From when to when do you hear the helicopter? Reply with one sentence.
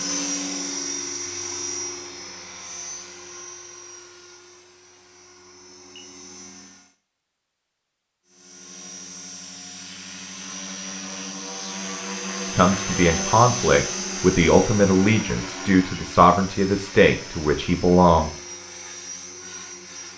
You can hear the helicopter from 0.0 to 6.8 s and from 8.2 to 20.1 s.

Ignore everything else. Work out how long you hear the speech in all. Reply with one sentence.
You can hear the speech for 6 seconds altogether.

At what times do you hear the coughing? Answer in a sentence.
The coughing can't be heard in this clip.